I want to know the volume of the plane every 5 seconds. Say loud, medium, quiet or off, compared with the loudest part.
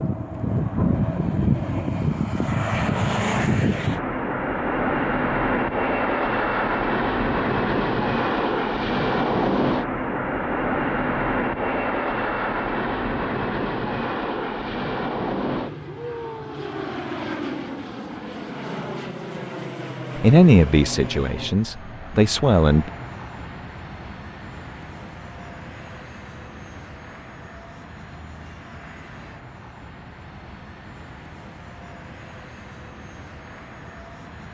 loud, loud, loud, medium, quiet, quiet, quiet.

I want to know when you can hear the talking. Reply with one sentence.
You can hear the talking from 20.1 to 22.9 s.